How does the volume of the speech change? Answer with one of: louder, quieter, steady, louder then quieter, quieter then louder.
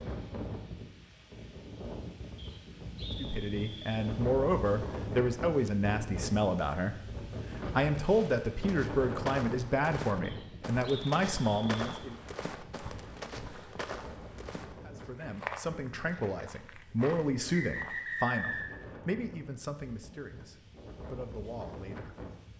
quieter.